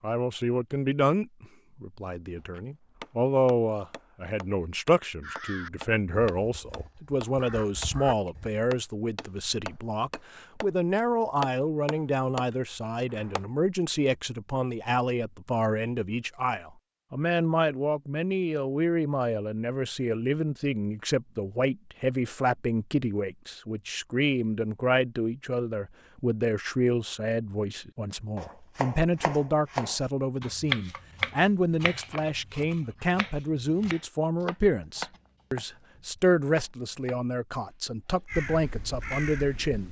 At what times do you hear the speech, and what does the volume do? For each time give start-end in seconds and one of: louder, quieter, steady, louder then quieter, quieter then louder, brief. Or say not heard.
0.0-39.8 steady.